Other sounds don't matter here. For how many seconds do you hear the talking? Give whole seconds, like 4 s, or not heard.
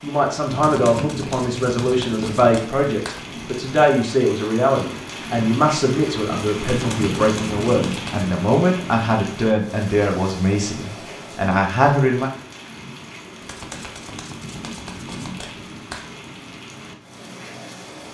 12 s.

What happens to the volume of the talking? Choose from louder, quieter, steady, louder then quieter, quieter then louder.
steady.